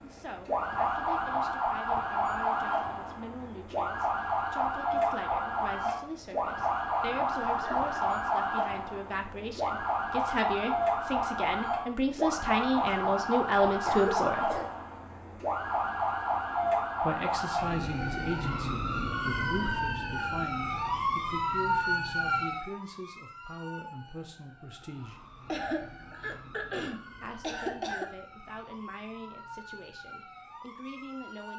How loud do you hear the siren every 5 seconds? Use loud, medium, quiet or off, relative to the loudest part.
loud, loud, loud, loud, loud, quiet, quiet.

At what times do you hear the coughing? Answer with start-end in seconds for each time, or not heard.
7.3-8.0, 12.8-14.8, 25.4-28.1.